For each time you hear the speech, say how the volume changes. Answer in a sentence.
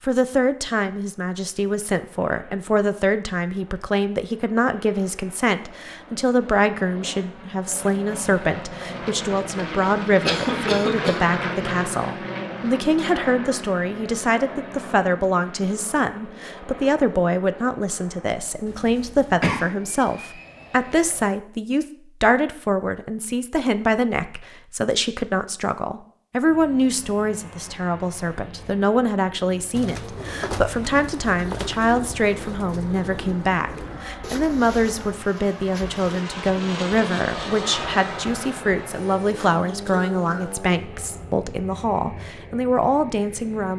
You can hear the speech from 0.0 to 43.7 s, at a steady volume.